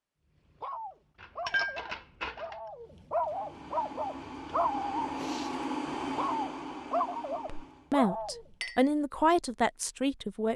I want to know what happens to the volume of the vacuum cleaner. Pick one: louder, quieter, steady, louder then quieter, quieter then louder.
louder then quieter.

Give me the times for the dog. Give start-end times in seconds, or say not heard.
0.6-8.4.